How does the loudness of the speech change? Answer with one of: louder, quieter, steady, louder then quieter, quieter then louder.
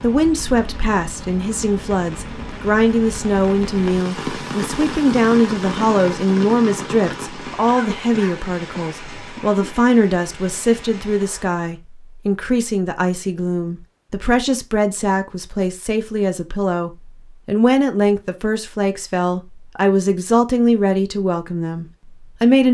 steady.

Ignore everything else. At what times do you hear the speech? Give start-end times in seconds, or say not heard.
0.0-22.7.